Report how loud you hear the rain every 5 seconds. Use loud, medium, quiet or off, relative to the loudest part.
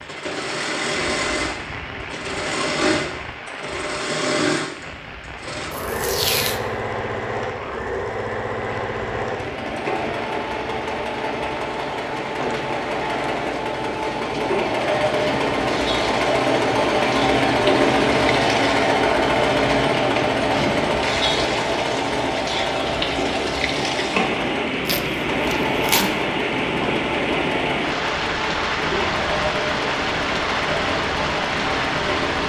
medium, quiet, medium, medium, loud, loud, loud.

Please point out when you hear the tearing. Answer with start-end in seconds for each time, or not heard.
5.7-6.6, 24.9-26.1.